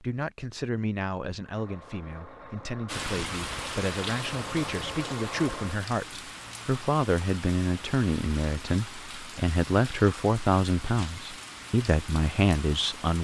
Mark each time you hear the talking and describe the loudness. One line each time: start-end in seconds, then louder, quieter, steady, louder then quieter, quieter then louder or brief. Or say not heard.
0.0-13.1 louder.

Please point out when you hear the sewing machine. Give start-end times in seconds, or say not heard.
1.4-5.8.